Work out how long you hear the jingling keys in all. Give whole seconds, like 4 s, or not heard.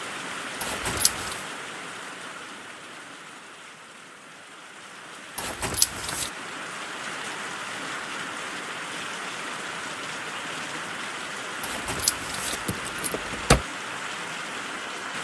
4 s.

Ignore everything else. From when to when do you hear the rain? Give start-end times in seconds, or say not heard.
0.0-15.1.